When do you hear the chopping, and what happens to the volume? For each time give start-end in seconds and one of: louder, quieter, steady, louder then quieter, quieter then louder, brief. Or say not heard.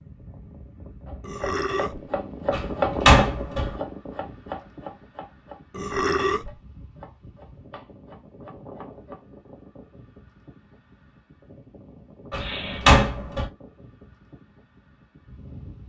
1.1-9.2 quieter.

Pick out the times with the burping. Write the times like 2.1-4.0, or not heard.
1.2-2.1, 5.7-6.5, 12.3-13.0.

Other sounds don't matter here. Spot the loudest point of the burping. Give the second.
6 s.